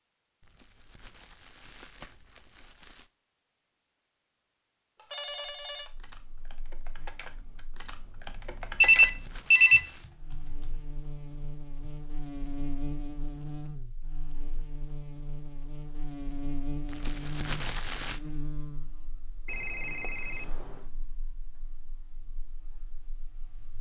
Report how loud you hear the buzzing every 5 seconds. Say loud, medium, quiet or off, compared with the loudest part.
off, quiet, loud, loud, quiet.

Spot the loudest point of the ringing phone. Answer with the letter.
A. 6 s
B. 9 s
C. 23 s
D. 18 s
B.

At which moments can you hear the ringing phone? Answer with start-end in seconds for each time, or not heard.
5.1-5.9, 8.8-9.8, 19.4-20.9.